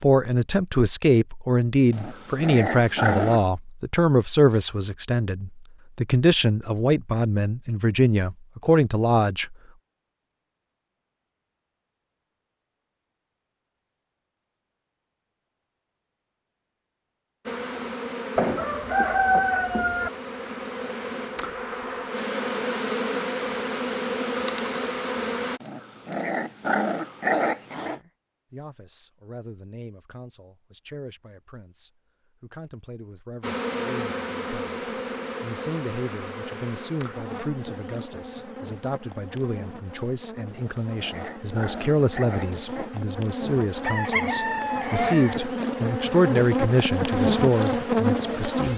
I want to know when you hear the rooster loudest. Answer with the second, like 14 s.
19 s.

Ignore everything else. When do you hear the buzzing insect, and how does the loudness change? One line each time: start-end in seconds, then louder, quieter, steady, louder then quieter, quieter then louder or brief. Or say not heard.
17.4-25.6 louder
33.4-48.7 quieter then louder.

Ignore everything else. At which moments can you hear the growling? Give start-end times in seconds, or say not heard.
1.9-3.5, 25.6-28.0, 40.5-43.0.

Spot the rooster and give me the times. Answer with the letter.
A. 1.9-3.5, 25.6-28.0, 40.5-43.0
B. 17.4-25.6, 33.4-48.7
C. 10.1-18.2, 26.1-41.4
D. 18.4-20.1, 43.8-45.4
D.